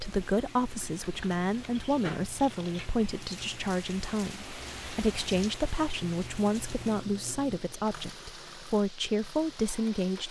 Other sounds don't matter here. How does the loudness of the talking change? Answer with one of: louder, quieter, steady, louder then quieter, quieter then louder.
steady.